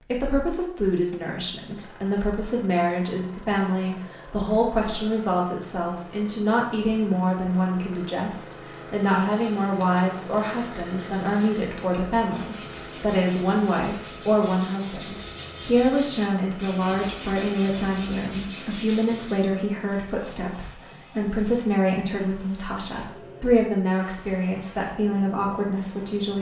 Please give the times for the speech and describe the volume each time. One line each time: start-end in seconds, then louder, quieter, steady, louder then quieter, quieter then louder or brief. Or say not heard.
0.0-26.3 steady.